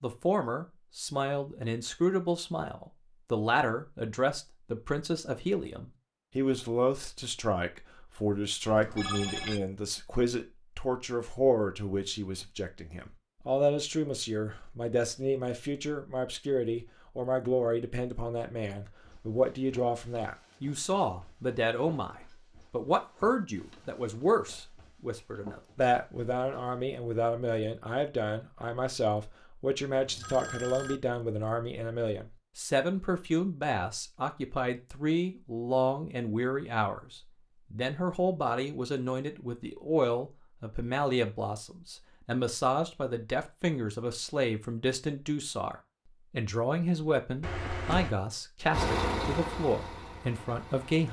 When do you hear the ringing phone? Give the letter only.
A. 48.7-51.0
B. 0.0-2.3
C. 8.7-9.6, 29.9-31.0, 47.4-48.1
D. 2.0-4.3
C.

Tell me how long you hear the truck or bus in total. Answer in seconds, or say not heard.
2 s.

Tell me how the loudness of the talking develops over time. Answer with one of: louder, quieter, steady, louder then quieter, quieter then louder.
steady.